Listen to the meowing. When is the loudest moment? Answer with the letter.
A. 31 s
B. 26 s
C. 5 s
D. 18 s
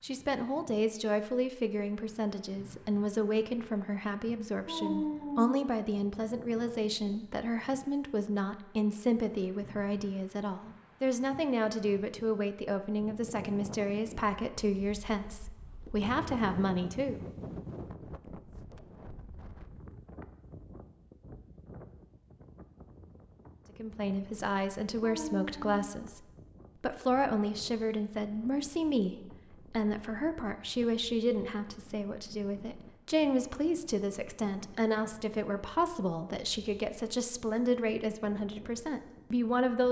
C.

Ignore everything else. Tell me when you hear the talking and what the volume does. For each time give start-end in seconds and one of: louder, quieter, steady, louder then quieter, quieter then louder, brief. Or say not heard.
0.0-17.2 steady
23.8-39.8 steady.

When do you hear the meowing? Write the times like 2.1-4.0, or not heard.
4.7-5.5, 25.0-25.9.